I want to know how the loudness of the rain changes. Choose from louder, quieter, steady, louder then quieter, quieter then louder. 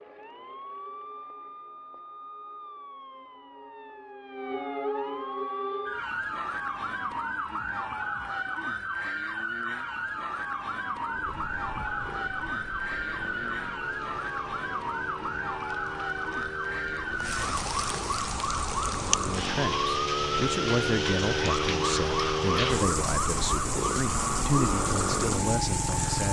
louder.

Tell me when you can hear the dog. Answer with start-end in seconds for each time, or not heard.
not heard.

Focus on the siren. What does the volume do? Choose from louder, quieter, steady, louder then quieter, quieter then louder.
louder.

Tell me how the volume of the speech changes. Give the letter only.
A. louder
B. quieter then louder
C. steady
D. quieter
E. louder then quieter
C.